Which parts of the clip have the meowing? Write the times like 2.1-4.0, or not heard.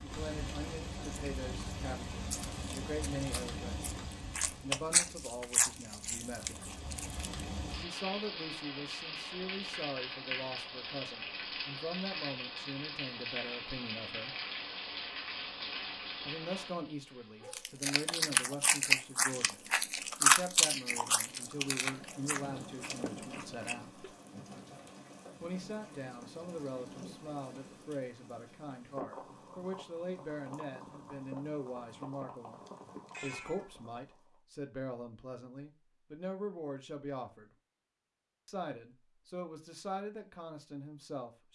32.6-33.7.